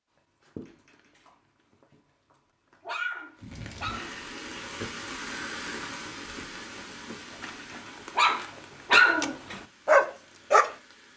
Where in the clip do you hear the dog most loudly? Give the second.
9 s.